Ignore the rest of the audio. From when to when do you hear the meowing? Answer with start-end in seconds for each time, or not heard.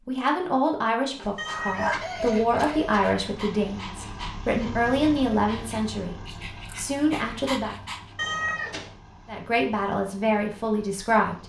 1.4-3.1, 8.2-8.9.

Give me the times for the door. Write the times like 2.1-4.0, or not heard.
not heard.